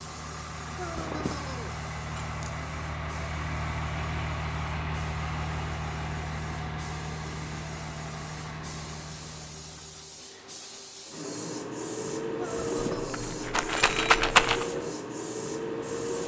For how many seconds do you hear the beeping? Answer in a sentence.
The beeping can be heard for 3 seconds in total.